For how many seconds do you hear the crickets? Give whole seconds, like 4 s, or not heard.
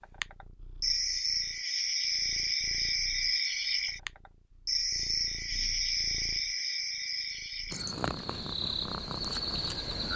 10 s.